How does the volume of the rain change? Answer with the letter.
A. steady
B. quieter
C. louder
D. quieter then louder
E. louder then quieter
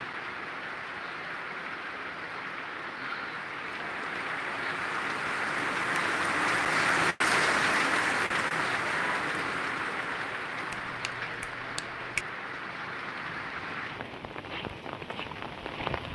E.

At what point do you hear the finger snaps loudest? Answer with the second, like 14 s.
12 s.